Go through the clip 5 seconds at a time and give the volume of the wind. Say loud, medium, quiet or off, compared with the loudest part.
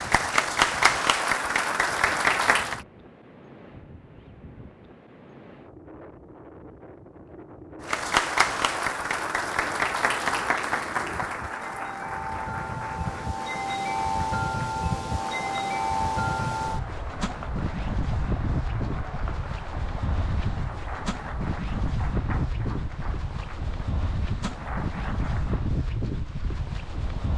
quiet, quiet, loud, loud, loud, loud.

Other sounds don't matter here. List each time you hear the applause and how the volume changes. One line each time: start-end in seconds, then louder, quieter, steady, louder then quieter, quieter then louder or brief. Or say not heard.
0.0-2.8 brief
7.8-25.7 quieter.